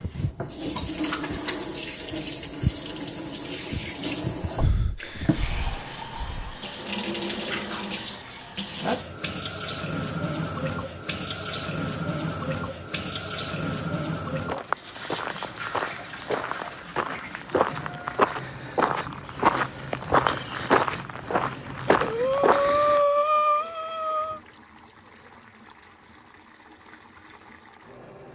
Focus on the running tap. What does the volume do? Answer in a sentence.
The loudness of the running tap goes down.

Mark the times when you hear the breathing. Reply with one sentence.
You can hear the breathing from 4.5 to 6.6 s and from 21.9 to 24.4 s.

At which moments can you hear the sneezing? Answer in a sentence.
The sneezing can't be heard in this clip.